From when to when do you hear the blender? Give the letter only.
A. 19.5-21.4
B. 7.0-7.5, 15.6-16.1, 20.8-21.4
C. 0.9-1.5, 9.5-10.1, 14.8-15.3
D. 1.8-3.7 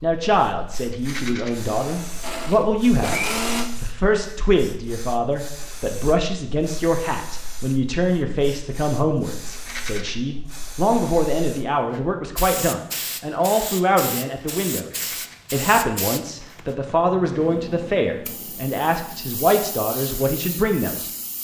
D.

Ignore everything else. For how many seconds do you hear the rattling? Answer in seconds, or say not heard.
2 s.